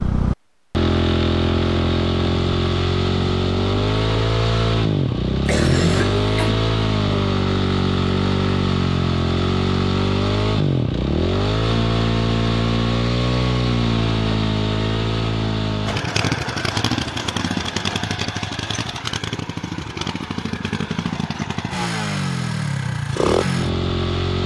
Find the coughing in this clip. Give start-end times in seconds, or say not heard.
5.5-6.6.